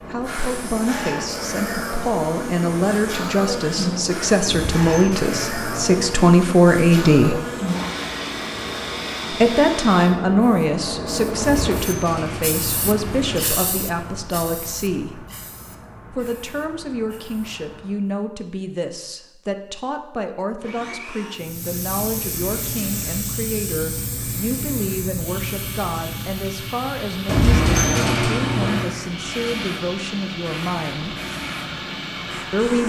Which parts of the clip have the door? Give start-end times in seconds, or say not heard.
4.5-6.3, 11.3-13.4, 27.2-28.9.